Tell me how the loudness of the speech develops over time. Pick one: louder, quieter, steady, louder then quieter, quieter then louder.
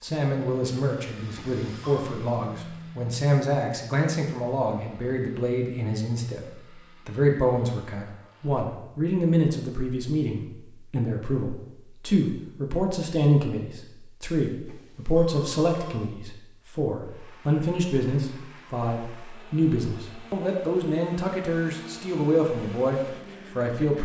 steady.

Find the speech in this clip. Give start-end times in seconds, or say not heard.
0.0-6.5, 7.0-24.0.